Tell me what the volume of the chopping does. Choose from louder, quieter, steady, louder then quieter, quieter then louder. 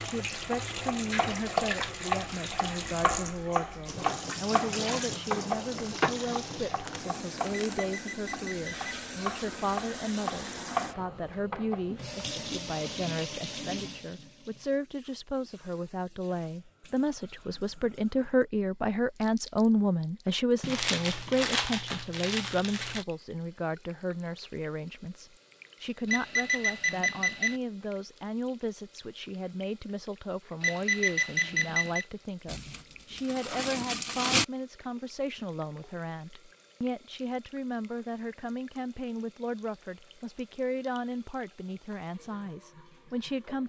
quieter then louder.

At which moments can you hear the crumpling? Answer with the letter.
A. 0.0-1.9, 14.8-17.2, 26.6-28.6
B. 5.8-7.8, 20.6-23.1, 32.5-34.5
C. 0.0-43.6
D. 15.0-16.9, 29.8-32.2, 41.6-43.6
B.